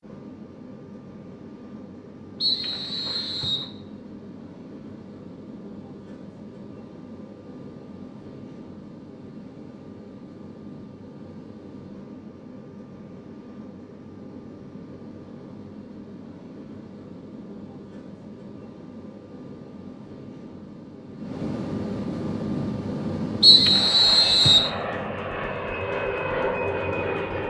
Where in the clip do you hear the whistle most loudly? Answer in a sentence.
The volume of the whistle peaks at 24 seconds.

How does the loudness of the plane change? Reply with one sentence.
The loudness of the plane goes up.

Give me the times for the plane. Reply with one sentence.
You can hear the plane from 0.0 to 27.4 s.